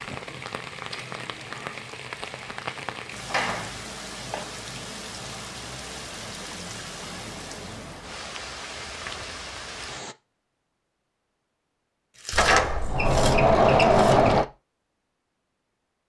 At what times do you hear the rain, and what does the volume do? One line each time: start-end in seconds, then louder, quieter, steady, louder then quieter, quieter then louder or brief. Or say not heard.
0.0-10.2 steady.